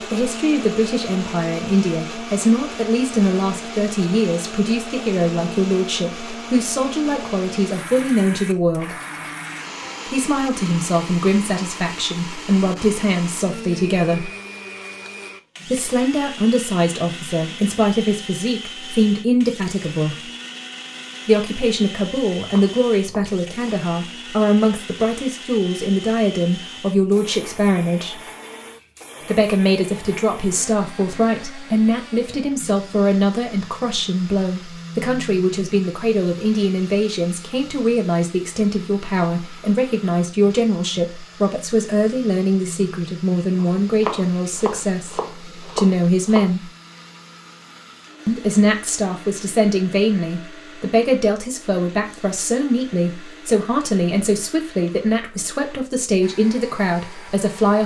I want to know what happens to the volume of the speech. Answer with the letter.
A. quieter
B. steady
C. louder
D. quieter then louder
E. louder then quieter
B.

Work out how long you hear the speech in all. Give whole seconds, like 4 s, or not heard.
52 s.